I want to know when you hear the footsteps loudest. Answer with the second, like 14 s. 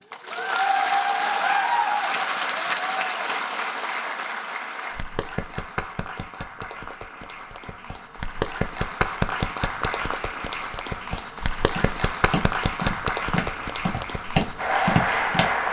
15 s.